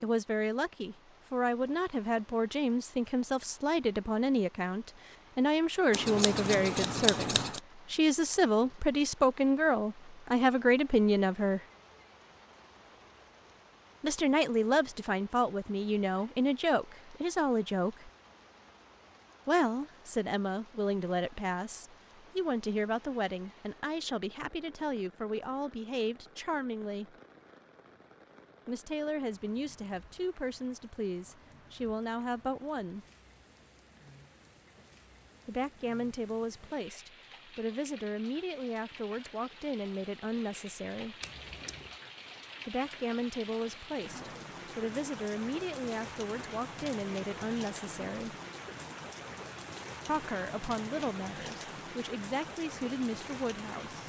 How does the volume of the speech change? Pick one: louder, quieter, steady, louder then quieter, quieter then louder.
quieter.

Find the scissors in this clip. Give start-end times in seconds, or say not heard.
5.9-7.6, 41.2-41.8.